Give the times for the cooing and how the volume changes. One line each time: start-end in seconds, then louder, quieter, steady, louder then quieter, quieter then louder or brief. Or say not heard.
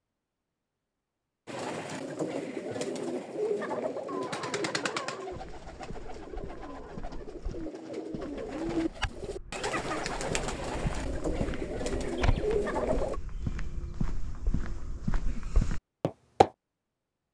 1.4-13.2 quieter then louder.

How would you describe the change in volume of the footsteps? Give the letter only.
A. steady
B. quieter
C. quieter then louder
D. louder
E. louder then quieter
D.